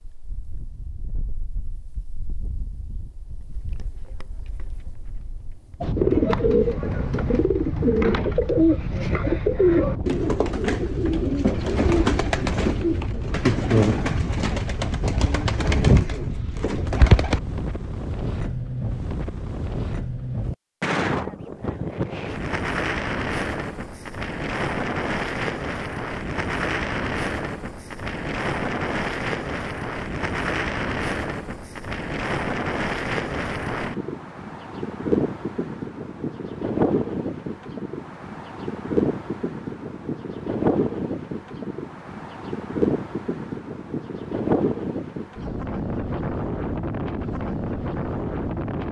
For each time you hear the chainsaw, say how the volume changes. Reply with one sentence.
The chainsaw can't be heard in this clip.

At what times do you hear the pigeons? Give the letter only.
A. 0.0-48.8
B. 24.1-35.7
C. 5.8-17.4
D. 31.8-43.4
C.